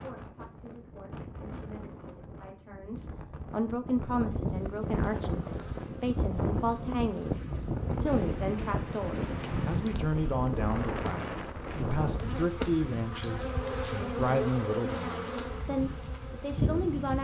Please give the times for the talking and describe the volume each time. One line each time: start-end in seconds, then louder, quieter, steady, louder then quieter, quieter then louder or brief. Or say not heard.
0.0-17.1 louder.